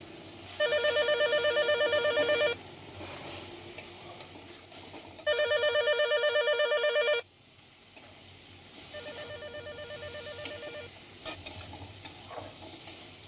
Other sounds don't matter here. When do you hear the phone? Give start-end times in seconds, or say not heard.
0.6-2.5, 5.2-7.2, 8.9-10.9.